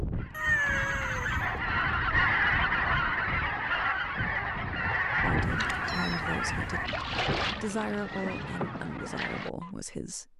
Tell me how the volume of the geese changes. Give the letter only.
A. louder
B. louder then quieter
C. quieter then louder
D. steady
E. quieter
E.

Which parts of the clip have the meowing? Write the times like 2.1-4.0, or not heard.
0.3-1.4, 5.4-6.9.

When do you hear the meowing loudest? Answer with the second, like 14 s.
1 s.